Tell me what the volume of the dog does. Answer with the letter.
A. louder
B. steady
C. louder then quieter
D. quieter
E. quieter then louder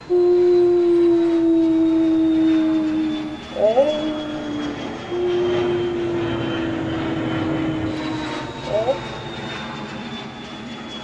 D.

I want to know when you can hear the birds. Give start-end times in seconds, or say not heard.
not heard.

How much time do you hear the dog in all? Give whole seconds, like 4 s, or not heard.
9 s.